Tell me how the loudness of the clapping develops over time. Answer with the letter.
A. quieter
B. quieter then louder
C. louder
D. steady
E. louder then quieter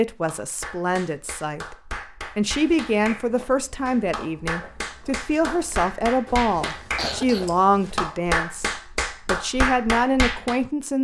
C.